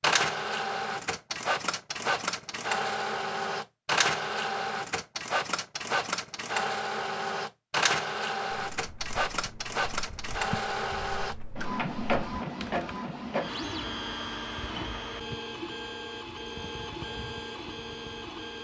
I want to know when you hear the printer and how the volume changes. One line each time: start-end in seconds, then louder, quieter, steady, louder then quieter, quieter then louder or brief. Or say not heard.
0.0-18.5 quieter.